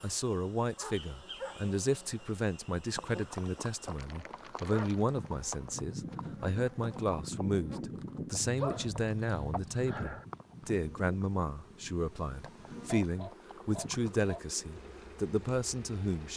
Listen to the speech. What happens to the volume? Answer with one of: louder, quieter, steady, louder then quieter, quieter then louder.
steady.